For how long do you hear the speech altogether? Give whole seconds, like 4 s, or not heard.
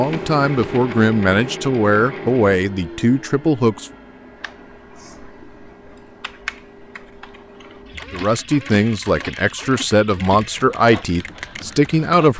8 s.